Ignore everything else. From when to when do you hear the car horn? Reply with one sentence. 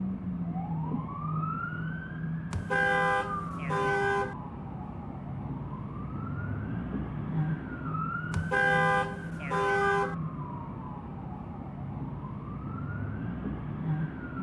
You can hear the car horn from 2.5 to 4.3 s and from 8.3 to 10.2 s.